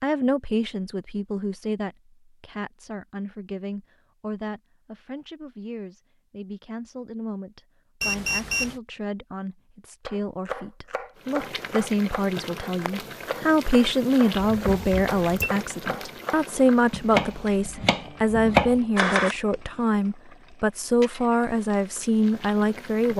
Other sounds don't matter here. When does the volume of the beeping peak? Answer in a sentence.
The loudest moment of the beeping is at 8 seconds.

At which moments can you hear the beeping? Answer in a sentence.
The beeping can be heard from 8.0 to 8.8 s and from 14.4 to 15.5 s.